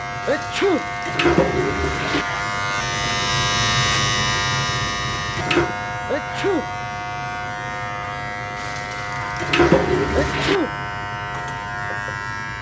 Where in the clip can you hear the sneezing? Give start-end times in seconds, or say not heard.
0.2-0.8, 6.0-6.7, 10.2-10.8.